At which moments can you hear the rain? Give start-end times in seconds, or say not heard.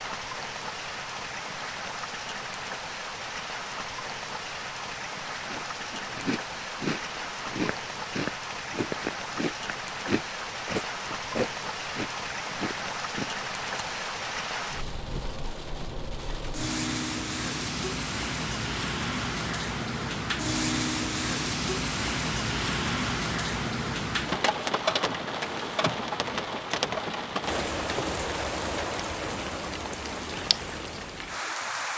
0.0-31.9.